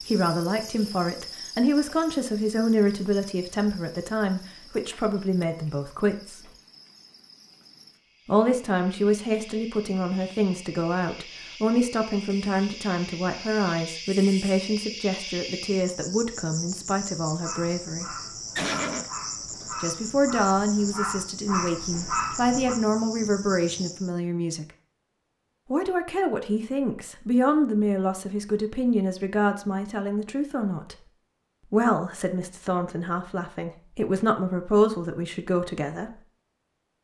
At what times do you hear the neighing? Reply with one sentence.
The neighing can be heard from 18.6 to 19.8 s.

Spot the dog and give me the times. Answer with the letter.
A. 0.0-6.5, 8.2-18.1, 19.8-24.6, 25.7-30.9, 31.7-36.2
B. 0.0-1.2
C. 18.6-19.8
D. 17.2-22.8
D.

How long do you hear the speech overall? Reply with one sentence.
You can hear the speech for 31 seconds altogether.